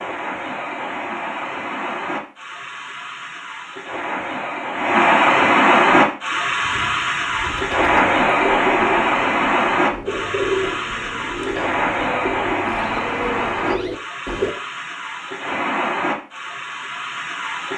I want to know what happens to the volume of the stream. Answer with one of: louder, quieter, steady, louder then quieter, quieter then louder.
louder then quieter.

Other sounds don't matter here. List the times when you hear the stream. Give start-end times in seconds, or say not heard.
0.0-17.7.